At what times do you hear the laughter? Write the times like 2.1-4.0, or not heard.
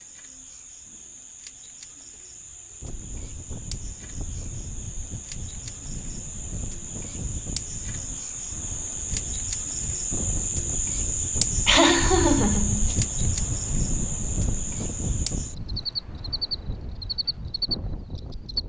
11.7-12.9.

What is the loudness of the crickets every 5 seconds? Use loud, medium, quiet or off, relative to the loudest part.
quiet, medium, loud, loud.